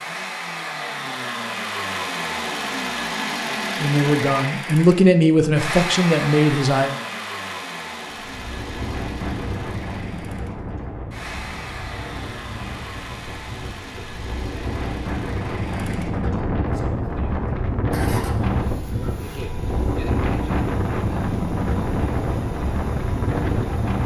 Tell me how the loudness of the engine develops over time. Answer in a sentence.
The loudness of the engine goes down.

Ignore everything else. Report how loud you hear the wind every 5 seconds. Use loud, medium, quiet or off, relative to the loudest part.
off, medium, medium, loud, loud.